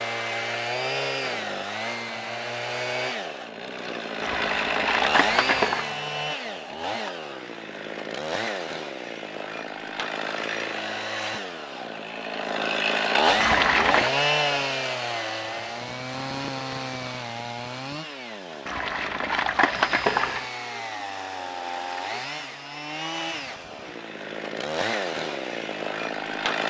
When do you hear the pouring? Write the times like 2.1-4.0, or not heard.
4.2-5.9, 13.3-14.1, 18.6-20.4.